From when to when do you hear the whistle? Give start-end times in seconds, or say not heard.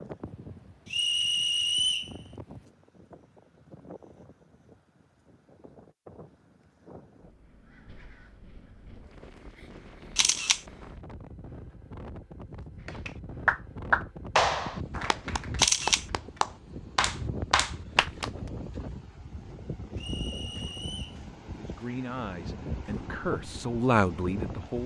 0.8-2.1, 19.9-21.2.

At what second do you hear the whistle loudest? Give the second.
2 s.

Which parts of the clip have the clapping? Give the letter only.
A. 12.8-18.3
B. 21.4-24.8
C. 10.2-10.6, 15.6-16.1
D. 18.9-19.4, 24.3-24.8
A.